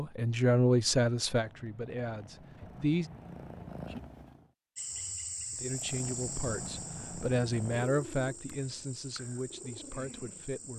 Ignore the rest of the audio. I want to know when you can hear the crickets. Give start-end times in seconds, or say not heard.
4.8-10.7.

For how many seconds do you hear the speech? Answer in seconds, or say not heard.
8 s.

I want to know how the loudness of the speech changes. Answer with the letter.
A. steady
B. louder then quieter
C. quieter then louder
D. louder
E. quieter
E.